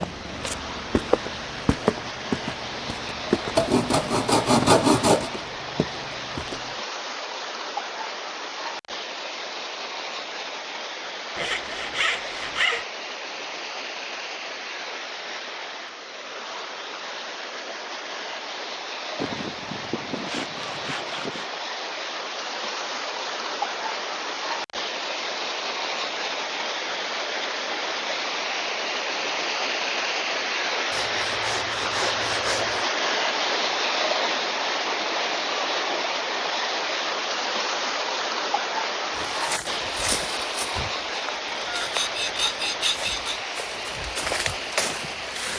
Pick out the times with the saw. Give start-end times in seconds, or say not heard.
3.5-5.3, 11.3-12.8, 19.1-21.5, 30.9-32.9, 41.6-43.4.